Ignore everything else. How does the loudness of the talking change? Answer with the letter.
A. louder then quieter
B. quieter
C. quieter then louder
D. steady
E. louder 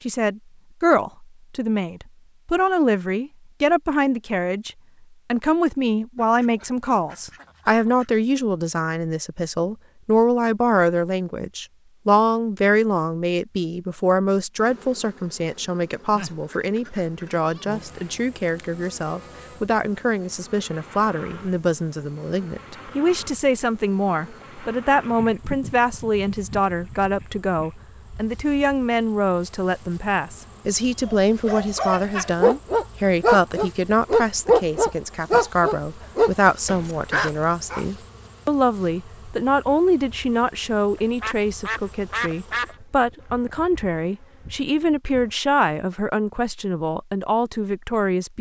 D.